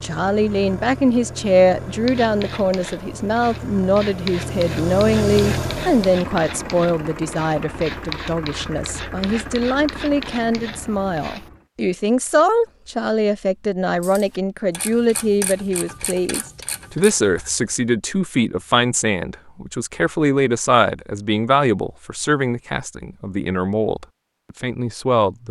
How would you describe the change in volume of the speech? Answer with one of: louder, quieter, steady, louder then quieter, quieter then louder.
steady.